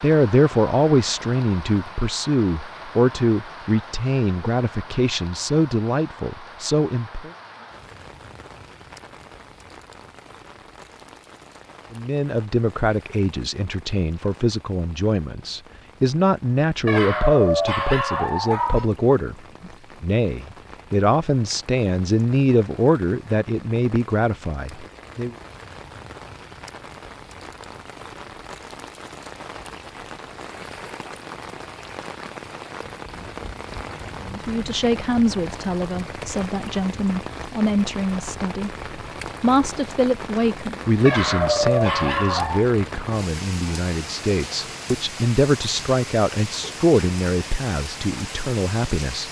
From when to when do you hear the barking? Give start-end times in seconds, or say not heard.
16.9-18.9, 41.0-42.6.